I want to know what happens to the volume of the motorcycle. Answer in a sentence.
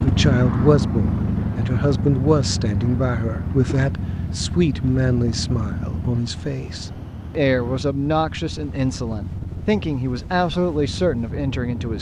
The loudness of the motorcycle goes down.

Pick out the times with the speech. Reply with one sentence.
You can hear the speech from 0.0 to 11.9 s.